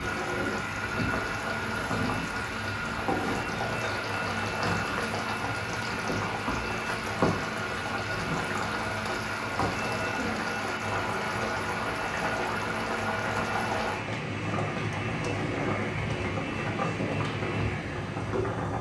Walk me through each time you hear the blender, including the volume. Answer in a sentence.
You can hear the blender from 0.0 to 18.7 s, at a steady volume.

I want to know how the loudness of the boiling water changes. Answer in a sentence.
The volume of the boiling water stays about the same.